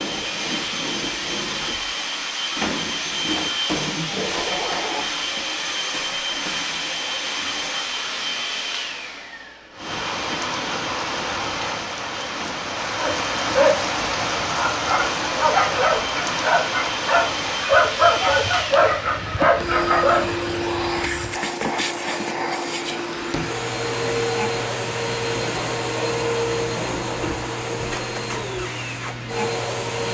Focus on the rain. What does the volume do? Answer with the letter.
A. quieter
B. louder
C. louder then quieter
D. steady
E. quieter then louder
A.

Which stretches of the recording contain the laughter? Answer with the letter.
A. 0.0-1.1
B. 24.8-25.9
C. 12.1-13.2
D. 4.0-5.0
D.